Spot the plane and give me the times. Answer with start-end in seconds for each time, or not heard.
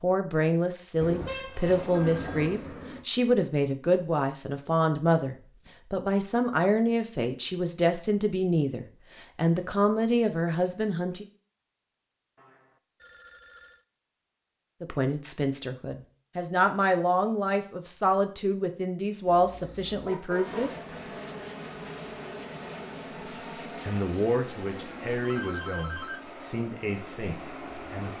20.4-28.1.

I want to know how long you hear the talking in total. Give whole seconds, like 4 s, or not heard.
22 s.